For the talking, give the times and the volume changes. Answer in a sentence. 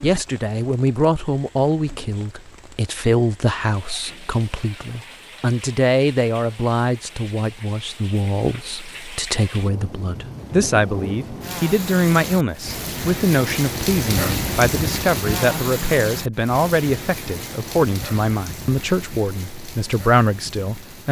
The talking can be heard from 0.0 to 21.0 s, at a steady volume.